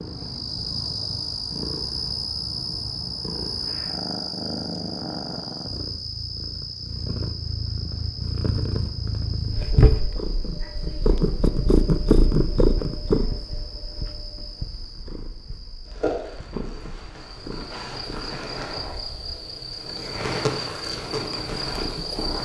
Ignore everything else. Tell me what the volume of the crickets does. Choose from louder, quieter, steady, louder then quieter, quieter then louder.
quieter then louder.